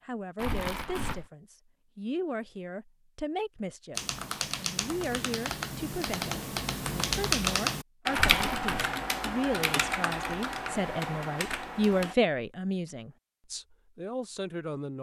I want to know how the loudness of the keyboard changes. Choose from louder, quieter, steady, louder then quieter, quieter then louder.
louder then quieter.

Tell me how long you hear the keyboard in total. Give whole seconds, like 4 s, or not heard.
8 s.